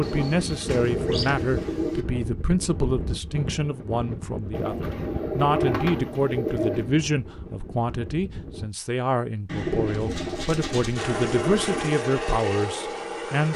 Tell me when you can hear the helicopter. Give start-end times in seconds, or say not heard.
10.9-13.5.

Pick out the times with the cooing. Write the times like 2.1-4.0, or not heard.
0.0-2.0, 4.5-7.0, 9.4-12.0.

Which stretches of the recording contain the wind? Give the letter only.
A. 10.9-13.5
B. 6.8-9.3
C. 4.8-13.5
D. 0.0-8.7
D.